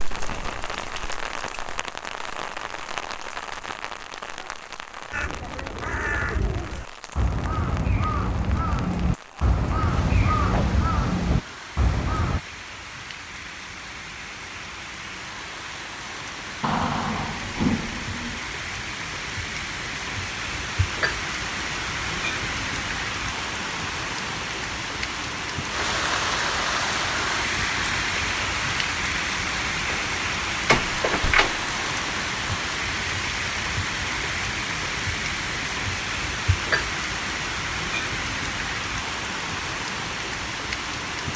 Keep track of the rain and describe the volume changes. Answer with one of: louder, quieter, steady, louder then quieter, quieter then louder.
louder.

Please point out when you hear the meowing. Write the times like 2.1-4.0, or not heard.
not heard.